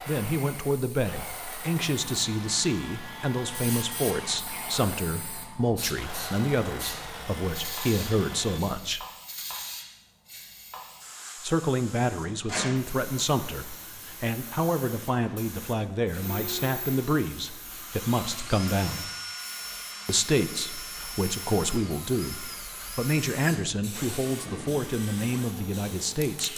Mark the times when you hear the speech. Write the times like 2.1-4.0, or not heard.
0.1-9.0, 11.4-19.1, 20.1-26.5.